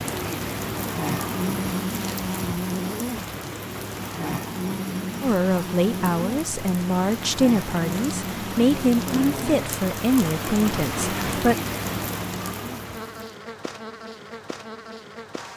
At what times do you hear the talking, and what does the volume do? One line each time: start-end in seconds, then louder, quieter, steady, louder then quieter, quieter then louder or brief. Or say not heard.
5.2-11.6 steady.